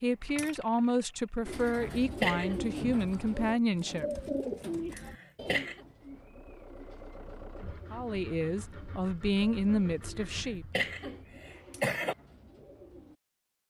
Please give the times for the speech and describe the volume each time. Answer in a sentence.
You can hear the speech from 0.0 to 4.2 s, at a steady volume; and briefly from 7.9 to 10.7 s.